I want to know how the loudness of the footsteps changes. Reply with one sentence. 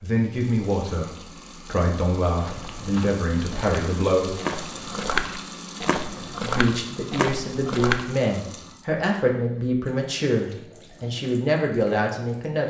The volume of the footsteps goes up.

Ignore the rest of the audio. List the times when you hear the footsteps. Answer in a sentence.
You can hear the footsteps from 2.4 to 8.1 s.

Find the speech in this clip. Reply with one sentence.
You can hear the speech from 0.0 to 4.3 s and from 6.4 to 12.6 s.